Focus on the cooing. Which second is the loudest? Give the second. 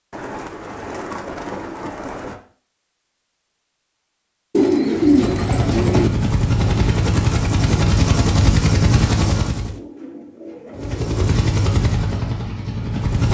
5 s.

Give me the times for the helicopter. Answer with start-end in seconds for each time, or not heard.
5.0-9.8, 10.8-13.2.